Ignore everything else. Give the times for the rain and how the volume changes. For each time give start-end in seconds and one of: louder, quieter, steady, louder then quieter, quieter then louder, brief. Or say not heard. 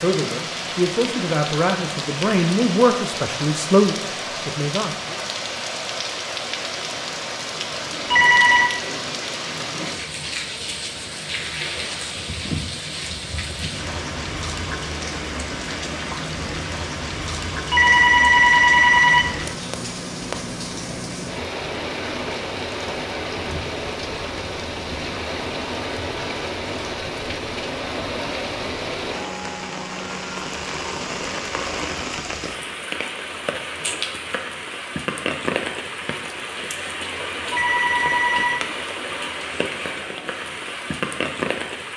0.0-41.9 steady.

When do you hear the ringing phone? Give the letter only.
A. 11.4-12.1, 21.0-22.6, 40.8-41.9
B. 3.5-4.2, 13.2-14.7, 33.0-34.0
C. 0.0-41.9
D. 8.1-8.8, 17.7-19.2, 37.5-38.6
D.